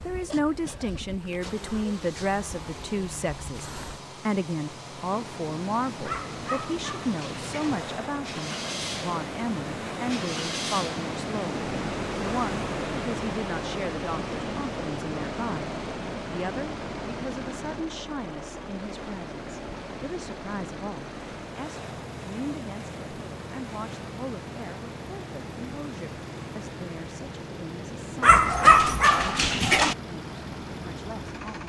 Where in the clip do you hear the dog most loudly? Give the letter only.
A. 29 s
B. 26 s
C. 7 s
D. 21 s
A.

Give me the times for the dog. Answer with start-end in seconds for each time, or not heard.
6.0-7.8, 28.2-29.9.